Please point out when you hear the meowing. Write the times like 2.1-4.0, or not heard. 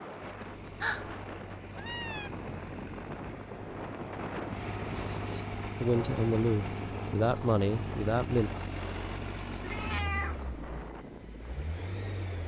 0.4-2.3, 4.9-5.5, 9.6-10.6.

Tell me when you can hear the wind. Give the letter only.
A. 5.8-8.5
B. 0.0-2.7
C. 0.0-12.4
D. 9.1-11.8
C.